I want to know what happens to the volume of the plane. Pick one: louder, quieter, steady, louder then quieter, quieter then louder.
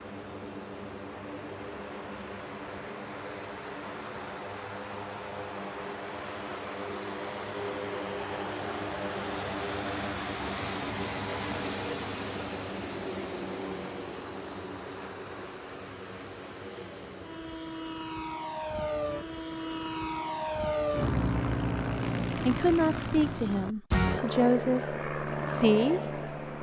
louder.